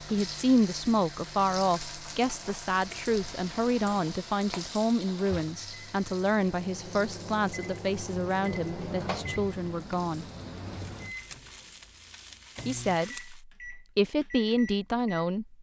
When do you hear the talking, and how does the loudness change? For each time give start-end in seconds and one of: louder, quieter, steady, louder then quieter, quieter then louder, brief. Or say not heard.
0.0-10.2 quieter
12.7-15.5 brief.